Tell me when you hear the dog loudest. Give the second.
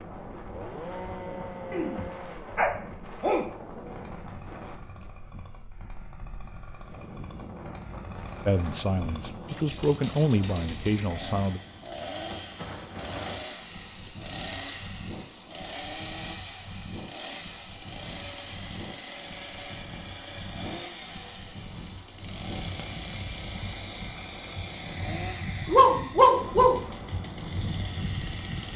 26 s.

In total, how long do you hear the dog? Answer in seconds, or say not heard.
4 s.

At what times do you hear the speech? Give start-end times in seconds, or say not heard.
8.4-11.6.